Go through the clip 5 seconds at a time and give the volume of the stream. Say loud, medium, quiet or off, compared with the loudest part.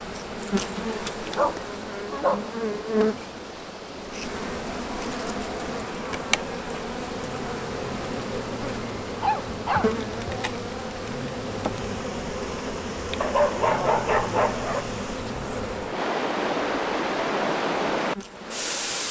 quiet, quiet, quiet, loud.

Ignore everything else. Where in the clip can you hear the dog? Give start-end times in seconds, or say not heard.
1.2-2.5, 9.2-10.4, 13.2-14.8.